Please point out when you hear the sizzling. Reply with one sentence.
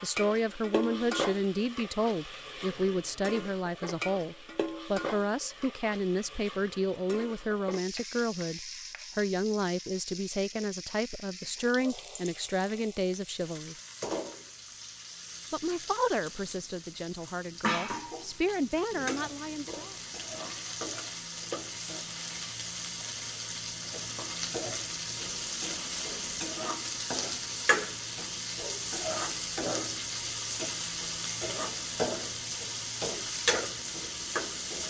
The sizzling can be heard from 0.0 to 34.8 s.